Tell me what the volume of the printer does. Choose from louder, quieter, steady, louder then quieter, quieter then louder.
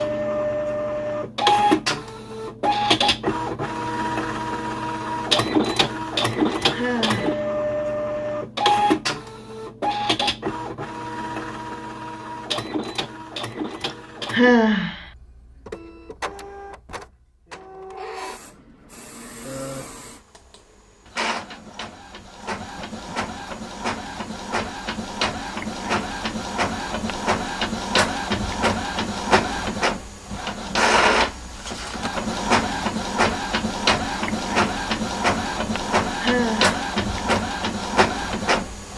quieter then louder.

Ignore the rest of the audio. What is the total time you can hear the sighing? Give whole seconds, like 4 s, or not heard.
2 s.